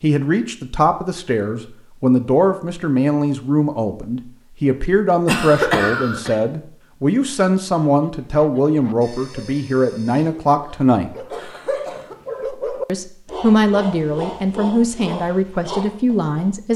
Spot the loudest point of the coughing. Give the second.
6 s.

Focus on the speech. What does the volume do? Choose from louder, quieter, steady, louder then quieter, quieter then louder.
steady.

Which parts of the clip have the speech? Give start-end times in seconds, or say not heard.
0.0-11.1, 12.8-16.7.